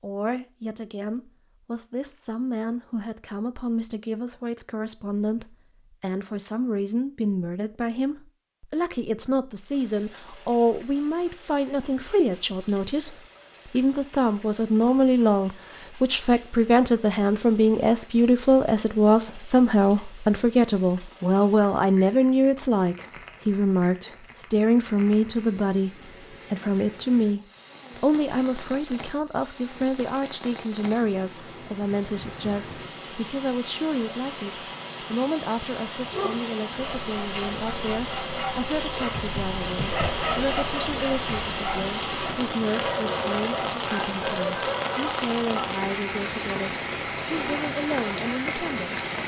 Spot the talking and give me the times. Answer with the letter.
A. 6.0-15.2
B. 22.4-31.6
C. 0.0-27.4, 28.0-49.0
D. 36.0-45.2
C.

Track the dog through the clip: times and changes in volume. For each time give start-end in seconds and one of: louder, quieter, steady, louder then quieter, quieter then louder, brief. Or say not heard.
36.0-45.2 louder.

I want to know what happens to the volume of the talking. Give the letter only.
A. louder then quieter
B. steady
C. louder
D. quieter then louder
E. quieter
A.